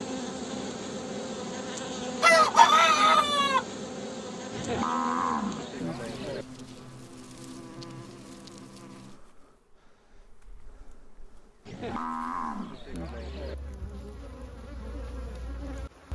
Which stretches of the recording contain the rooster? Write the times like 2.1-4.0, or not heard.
2.2-3.6.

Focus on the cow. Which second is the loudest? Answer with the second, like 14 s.
5 s.